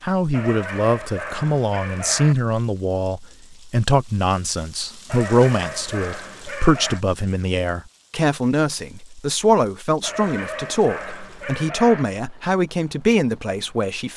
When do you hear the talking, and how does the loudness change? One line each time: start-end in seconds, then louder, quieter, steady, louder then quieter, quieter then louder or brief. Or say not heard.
0.0-14.1 steady.